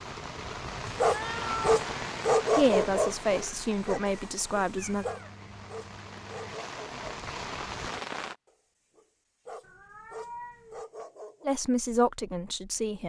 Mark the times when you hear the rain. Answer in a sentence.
The rain can be heard from 0.0 to 8.3 s.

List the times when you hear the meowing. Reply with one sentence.
You can hear the meowing from 1.0 to 1.9 s, from 4.8 to 6.5 s and from 9.6 to 10.8 s.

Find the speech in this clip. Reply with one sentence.
You can hear the speech from 2.5 to 5.0 s and from 11.4 to 13.0 s.